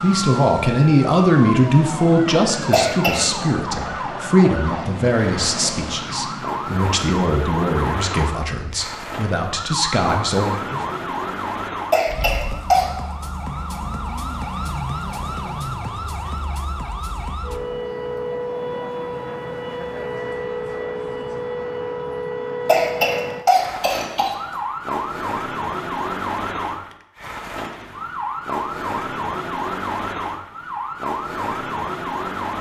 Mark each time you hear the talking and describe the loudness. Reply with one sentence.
You can hear the talking from 0.0 to 10.8 s, getting quieter.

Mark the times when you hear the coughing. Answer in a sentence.
You can hear the coughing from 2.7 to 3.2 s, from 11.9 to 12.8 s and from 22.6 to 24.4 s.